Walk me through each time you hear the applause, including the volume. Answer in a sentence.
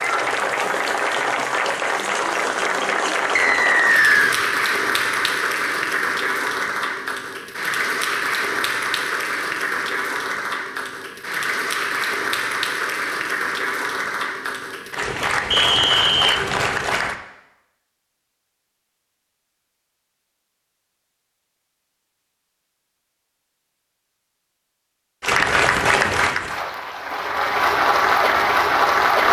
The applause can be heard from 0.0 to 17.1 s, at a steady volume; and from 25.2 to 29.2 s, getting quieter then louder.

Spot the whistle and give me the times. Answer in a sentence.
You can hear the whistle from 3.4 to 4.3 s and from 15.5 to 16.4 s.